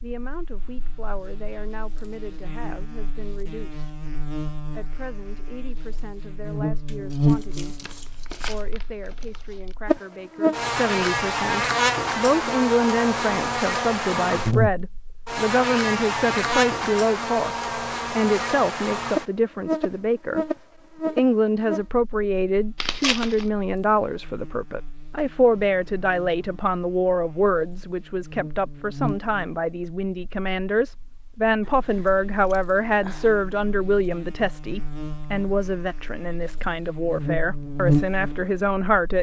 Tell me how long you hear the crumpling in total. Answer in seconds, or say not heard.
3 s.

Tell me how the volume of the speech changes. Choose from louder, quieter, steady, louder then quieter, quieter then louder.
louder.